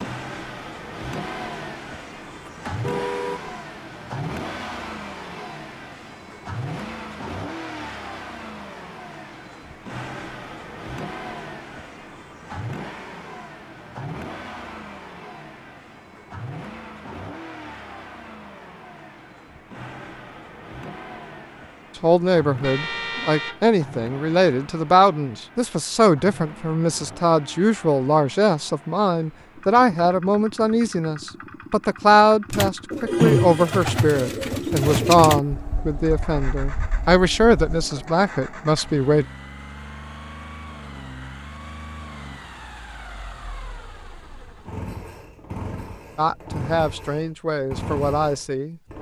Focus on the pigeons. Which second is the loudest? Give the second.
33 s.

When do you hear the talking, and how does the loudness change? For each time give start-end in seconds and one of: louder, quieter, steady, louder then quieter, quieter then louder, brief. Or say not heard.
22.0-39.2 steady
46.1-48.8 brief.